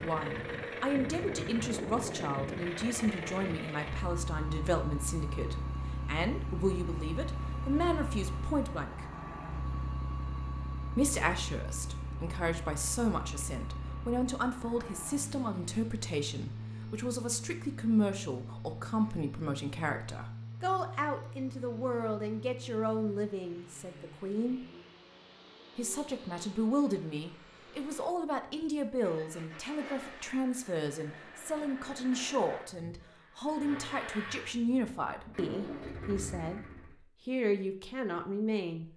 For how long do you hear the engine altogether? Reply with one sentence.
You can hear the engine for 37 seconds altogether.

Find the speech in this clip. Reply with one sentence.
You can hear the speech from 0.0 to 9.1 s, from 10.9 to 24.6 s, from 25.8 to 36.6 s and from 37.2 to 38.9 s.